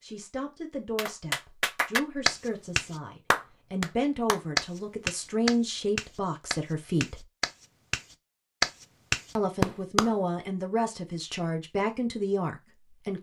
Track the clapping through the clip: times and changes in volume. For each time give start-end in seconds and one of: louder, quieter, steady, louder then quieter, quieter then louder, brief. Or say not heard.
0.9-10.1 quieter then louder.